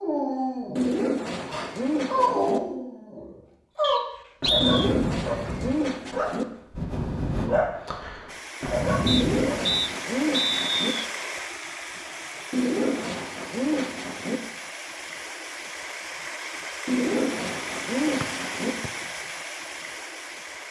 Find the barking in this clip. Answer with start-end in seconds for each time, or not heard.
0.0-9.8.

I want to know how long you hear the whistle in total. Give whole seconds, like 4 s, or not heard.
4 s.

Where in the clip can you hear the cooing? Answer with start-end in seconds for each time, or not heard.
0.8-2.6, 4.6-6.5, 9.1-10.9, 12.5-14.4, 16.9-18.8.